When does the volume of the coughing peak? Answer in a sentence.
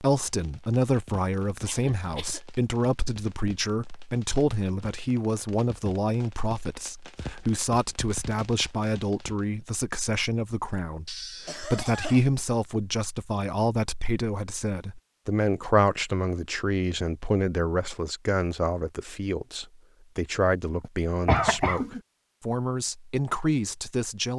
The volume of the coughing peaks at 21 seconds.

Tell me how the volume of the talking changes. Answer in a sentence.
The loudness of the talking stays about the same.